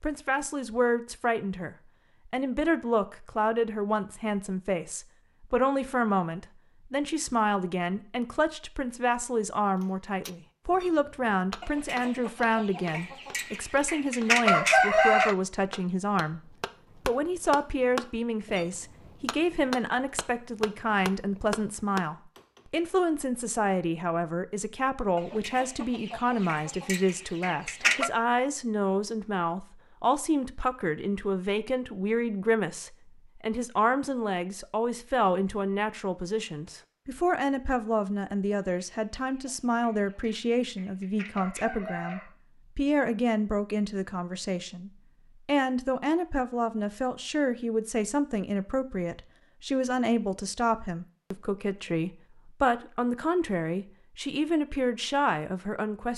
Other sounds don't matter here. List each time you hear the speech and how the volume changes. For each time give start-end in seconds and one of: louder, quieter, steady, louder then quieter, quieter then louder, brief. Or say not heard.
0.0-56.1 steady.